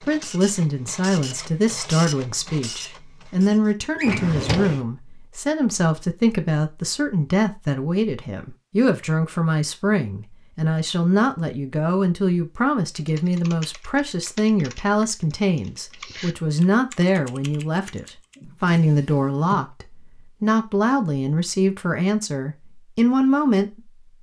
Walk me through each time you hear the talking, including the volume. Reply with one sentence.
You can hear the talking from 0.1 to 23.7 s, at a steady volume.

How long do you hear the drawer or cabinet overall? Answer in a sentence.
You can hear the drawer or cabinet for 2 seconds altogether.